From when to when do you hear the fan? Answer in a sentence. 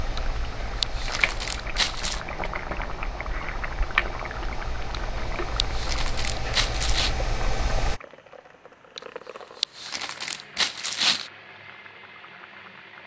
The fan can be heard from 0.0 to 8.0 s.